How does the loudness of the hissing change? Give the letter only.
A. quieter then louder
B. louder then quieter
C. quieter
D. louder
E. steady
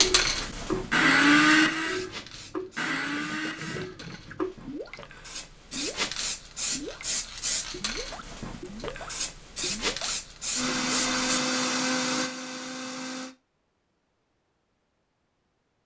A.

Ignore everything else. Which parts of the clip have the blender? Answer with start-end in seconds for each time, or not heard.
0.0-4.5, 10.6-13.3.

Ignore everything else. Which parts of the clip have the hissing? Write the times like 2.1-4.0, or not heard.
0.0-11.2.